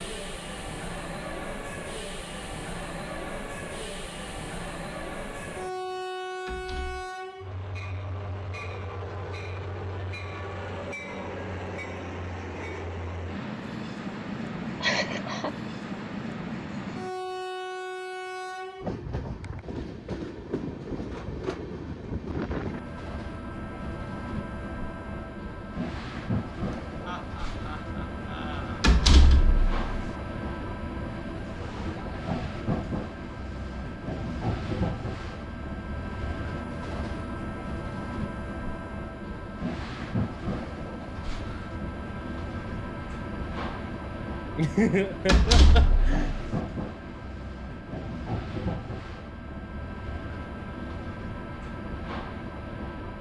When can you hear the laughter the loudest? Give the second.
45 s.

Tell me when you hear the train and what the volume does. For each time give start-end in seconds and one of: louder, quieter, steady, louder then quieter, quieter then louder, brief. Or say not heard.
0.0-53.1 steady.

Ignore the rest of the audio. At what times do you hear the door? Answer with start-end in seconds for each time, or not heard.
6.5-7.1, 28.8-30.1, 45.2-46.5.